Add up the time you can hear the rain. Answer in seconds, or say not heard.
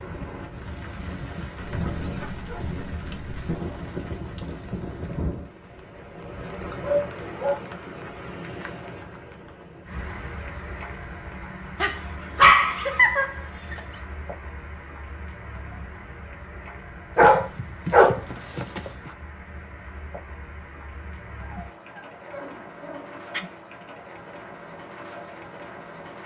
26 s.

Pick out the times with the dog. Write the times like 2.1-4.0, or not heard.
1.9-3.4, 6.8-7.6, 11.8-13.8, 17.1-19.1, 21.4-23.4.